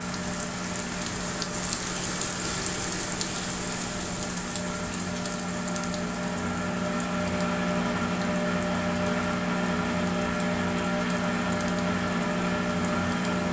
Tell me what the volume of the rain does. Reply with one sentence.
The loudness of the rain goes down.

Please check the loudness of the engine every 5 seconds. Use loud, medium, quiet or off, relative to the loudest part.
medium, loud, loud.